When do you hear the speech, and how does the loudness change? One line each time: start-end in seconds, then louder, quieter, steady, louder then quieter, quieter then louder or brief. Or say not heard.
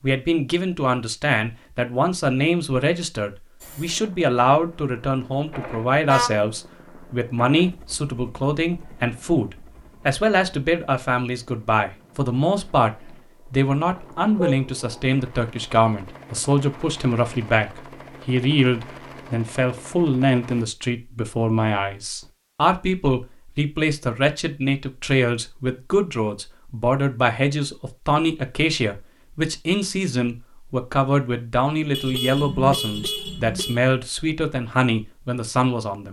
0.0-36.0 steady.